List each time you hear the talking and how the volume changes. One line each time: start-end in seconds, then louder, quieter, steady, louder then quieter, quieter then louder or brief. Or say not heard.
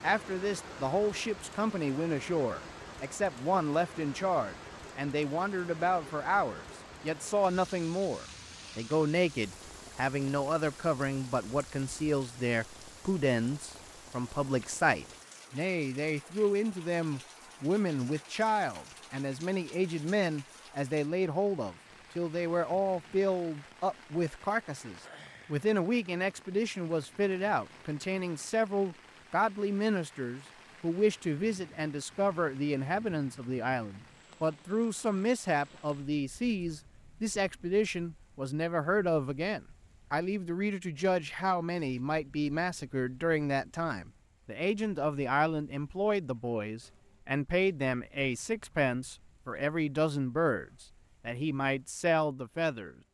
0.0-53.0 steady.